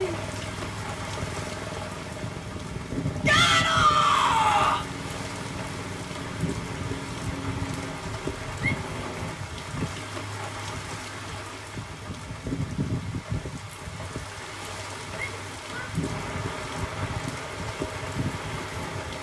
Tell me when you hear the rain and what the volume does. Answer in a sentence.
You can hear the rain from 0.0 to 19.1 s, at a steady volume.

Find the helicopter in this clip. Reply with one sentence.
You can hear the helicopter from 0.0 to 9.4 s and from 16.0 to 19.1 s.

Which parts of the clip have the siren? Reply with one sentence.
The siren can't be heard in this clip.